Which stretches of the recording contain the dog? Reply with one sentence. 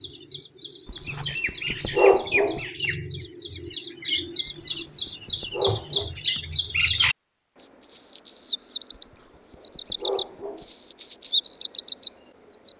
You can hear the dog from 0.9 to 2.6 s, from 4.5 to 6.1 s and from 8.9 to 10.7 s.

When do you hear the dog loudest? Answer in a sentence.
The volume of the dog peaks at 2 seconds.